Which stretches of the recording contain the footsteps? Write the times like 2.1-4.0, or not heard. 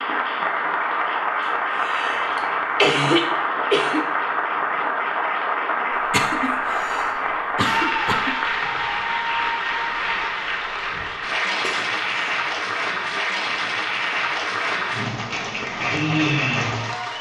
not heard.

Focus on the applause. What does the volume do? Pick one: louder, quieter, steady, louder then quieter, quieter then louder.
steady.